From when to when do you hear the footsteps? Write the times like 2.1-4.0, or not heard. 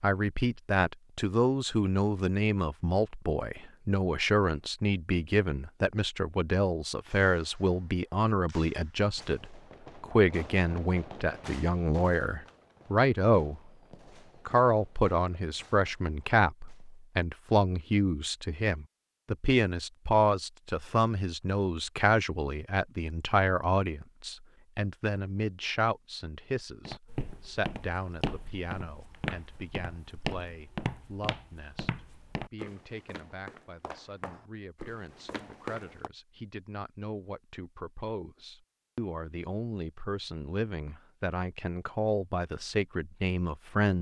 26.9-36.1.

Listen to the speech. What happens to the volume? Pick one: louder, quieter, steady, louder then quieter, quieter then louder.
quieter then louder.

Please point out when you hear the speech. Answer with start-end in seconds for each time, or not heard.
0.0-13.6, 14.4-43.9.